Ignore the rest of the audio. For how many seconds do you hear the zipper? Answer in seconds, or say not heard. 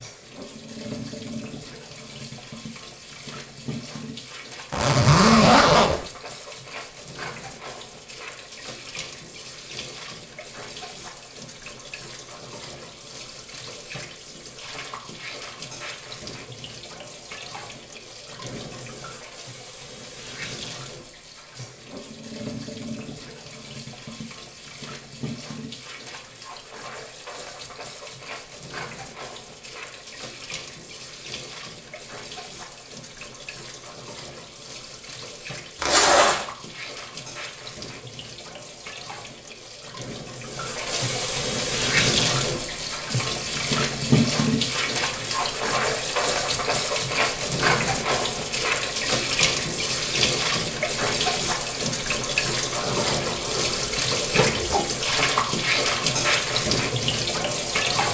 4 s.